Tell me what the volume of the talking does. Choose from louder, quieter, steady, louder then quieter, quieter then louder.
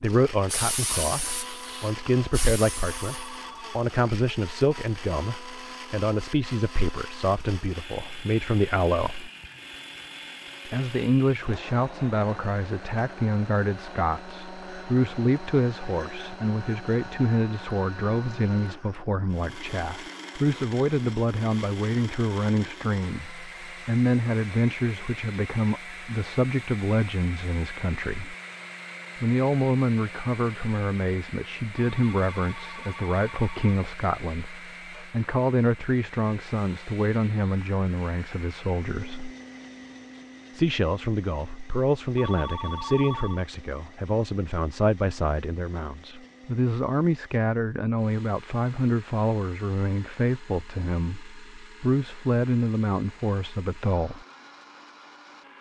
steady.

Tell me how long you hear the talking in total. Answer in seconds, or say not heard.
51 s.